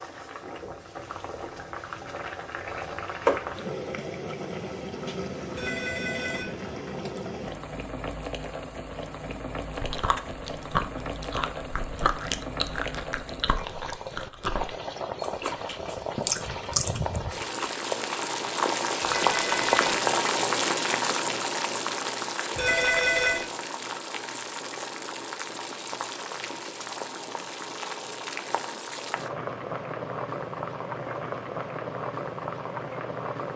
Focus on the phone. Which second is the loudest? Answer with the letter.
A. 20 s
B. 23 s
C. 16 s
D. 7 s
B.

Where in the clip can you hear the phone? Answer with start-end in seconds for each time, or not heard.
5.5-6.5, 19.0-19.7, 22.6-23.4.